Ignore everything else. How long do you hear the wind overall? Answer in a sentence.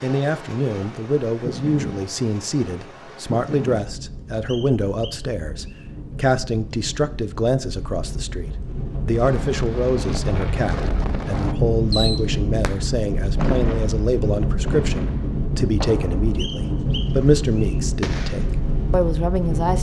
You can hear the wind for 20 seconds altogether.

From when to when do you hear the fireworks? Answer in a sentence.
You can hear the fireworks from 9.1 to 18.6 s.